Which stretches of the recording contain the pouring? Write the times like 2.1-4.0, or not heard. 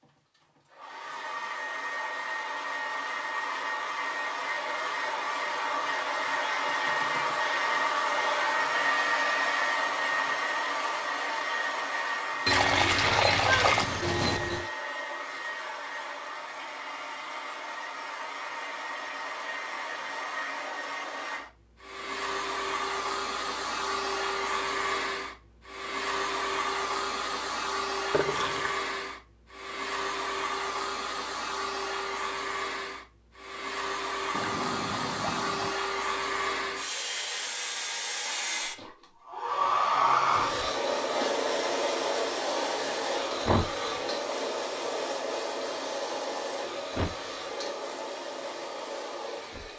12.4-14.7, 28.1-28.8, 34.3-35.8.